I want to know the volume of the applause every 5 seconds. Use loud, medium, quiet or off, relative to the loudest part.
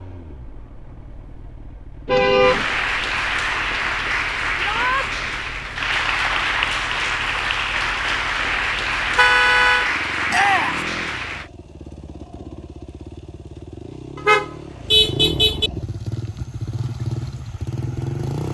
loud, loud, loud, off.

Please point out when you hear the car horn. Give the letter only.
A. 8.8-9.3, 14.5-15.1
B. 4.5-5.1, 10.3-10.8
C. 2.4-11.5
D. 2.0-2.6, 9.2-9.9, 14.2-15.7
D.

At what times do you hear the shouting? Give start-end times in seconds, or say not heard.
4.5-5.1, 10.3-10.8.